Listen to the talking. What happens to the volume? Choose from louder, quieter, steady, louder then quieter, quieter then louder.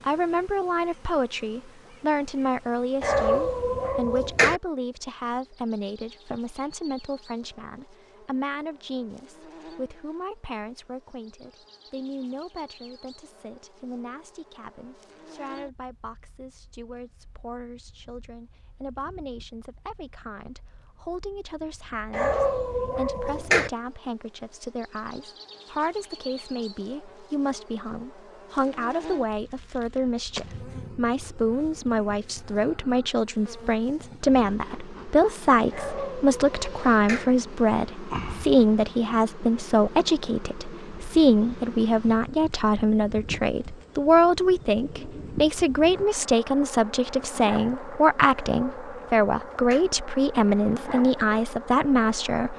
quieter then louder.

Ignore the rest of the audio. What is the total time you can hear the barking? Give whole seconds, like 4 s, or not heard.
6 s.